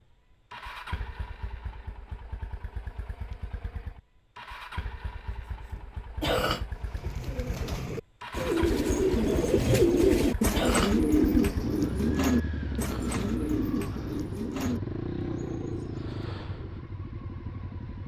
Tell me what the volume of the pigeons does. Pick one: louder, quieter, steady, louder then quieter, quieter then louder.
louder then quieter.